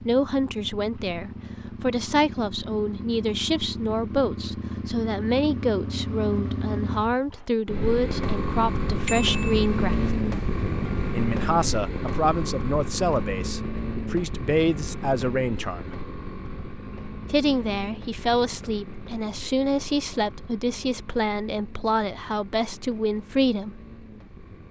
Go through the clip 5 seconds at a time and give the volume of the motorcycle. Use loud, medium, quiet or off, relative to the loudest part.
medium, loud, loud, medium, quiet.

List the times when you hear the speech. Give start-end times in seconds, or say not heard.
0.1-10.2, 11.1-15.9, 17.2-23.8.